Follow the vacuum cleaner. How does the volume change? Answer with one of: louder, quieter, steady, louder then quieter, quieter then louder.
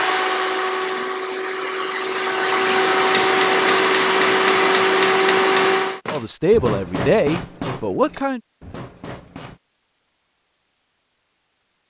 louder.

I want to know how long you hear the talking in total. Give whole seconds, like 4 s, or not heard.
2 s.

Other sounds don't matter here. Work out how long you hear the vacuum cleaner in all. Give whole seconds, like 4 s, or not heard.
6 s.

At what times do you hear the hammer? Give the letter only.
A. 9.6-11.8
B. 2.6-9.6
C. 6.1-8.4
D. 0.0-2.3
B.